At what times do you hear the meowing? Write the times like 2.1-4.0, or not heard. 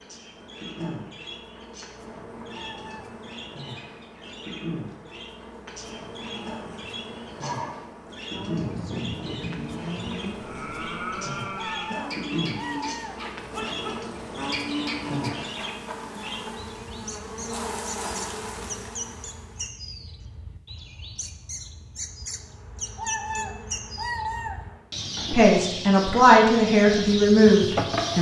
2.5-3.1, 11.6-13.2, 22.9-24.6.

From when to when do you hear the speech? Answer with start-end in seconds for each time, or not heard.
25.3-28.1.